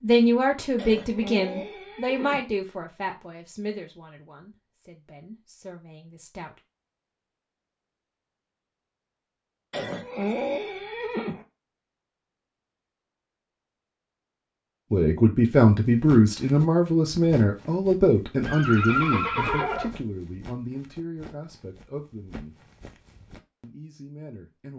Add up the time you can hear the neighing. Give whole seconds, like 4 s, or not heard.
5 s.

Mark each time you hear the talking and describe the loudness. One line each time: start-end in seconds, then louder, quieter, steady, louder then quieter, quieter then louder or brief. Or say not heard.
0.0-6.5 quieter
14.9-22.6 quieter
23.6-24.7 brief.